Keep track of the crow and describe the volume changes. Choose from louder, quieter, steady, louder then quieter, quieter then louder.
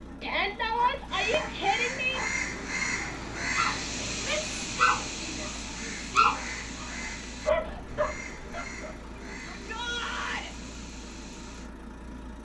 quieter.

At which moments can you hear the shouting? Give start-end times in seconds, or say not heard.
0.2-2.2, 4.2-6.3, 9.5-10.5.